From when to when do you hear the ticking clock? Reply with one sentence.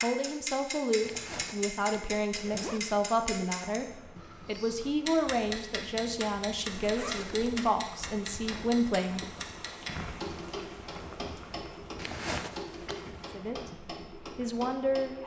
The ticking clock can be heard from 0.0 to 15.2 s.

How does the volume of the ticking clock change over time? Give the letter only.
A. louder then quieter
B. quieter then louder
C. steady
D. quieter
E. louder
D.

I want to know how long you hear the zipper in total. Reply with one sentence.
You can hear the zipper for 4 seconds altogether.